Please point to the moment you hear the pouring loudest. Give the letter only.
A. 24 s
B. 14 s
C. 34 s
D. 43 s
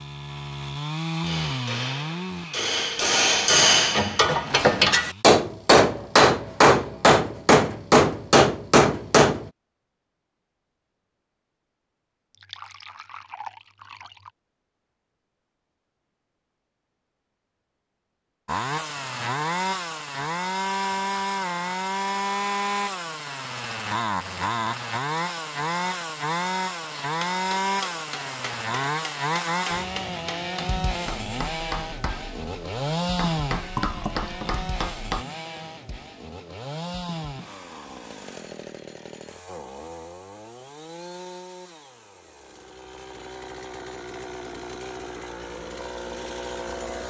C.